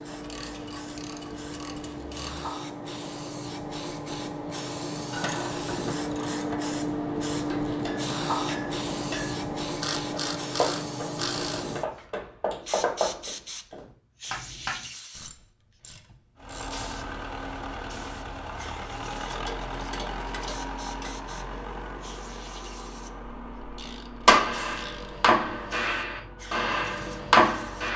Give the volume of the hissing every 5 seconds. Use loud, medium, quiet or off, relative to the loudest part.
medium, loud, medium, quiet, quiet, quiet.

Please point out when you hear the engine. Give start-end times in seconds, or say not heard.
16.4-27.9.